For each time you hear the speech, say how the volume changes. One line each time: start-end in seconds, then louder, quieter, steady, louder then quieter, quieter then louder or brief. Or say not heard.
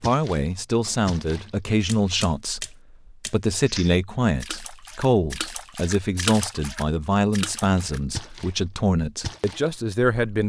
0.0-10.4 steady.